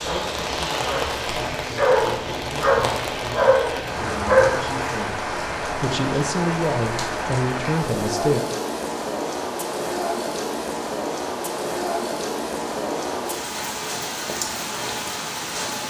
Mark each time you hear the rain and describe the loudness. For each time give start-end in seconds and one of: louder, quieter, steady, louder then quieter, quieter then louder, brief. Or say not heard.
0.0-15.8 steady.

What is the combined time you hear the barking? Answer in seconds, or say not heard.
5 s.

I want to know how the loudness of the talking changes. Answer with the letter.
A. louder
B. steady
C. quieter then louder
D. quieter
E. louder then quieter
A.